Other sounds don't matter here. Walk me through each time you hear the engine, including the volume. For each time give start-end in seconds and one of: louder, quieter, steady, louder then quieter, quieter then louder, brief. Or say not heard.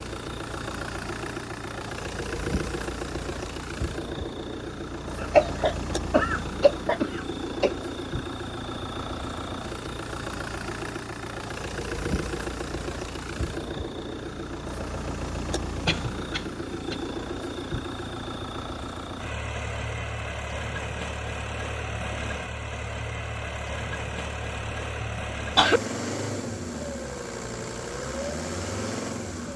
0.0-29.5 steady.